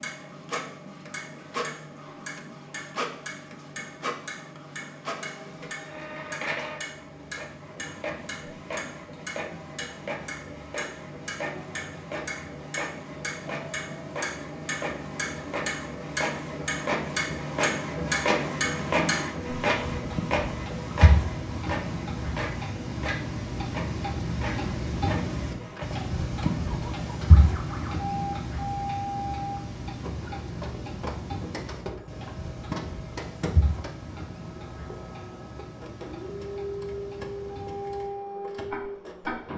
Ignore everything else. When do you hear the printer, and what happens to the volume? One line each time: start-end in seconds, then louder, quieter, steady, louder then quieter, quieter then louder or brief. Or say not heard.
0.0-39.5 louder then quieter.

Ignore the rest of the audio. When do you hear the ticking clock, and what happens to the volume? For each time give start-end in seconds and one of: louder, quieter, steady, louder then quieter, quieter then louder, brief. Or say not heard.
0.0-39.4 louder then quieter.